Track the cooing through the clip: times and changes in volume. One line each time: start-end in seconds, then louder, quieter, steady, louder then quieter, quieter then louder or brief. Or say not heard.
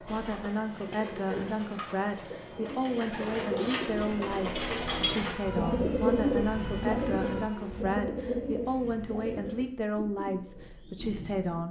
0.1-11.6 louder then quieter.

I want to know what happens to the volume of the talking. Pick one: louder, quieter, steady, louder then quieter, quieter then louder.
steady.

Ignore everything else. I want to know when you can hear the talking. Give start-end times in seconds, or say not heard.
0.0-11.6.